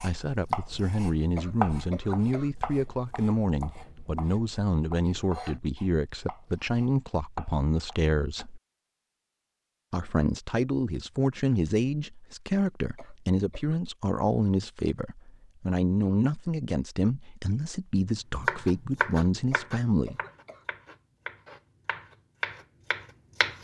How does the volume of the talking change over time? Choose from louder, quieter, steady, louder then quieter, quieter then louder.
steady.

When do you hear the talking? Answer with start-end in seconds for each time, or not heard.
0.0-8.6, 9.9-20.2.